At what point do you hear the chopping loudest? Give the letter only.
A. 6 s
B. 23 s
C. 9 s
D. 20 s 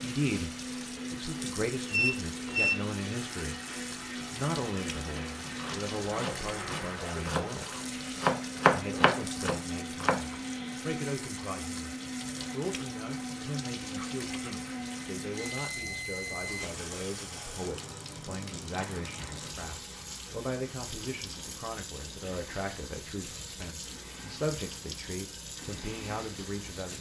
C.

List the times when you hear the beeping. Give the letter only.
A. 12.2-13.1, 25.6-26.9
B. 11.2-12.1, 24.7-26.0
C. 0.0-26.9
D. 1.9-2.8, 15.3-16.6
D.